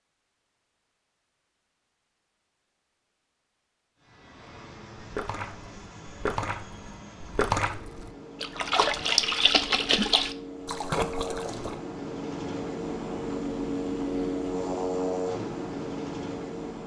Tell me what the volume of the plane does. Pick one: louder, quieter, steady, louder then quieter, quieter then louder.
louder.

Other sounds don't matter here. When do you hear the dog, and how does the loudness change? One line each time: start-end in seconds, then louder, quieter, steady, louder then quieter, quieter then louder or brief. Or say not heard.
not heard.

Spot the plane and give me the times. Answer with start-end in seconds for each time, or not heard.
4.0-16.8.